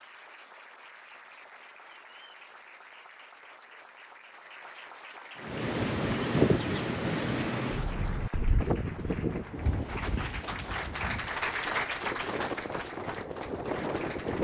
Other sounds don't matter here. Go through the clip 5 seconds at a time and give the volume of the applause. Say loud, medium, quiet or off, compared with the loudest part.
quiet, medium, loud.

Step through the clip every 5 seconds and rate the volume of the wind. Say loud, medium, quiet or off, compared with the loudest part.
off, loud, medium.